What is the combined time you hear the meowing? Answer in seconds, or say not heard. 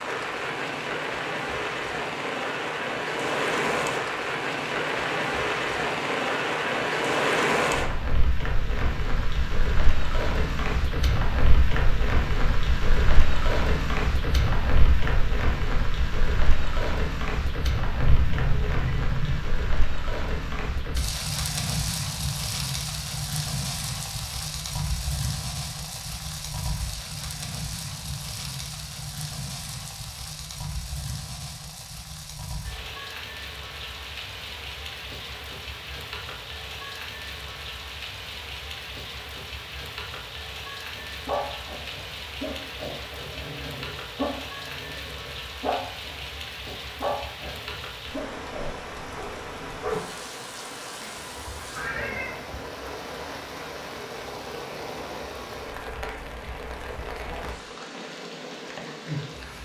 3 s.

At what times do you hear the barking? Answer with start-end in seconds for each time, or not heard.
41.0-50.0.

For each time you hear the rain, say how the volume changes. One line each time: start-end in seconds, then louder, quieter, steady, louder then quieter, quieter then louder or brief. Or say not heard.
0.0-59.6 quieter.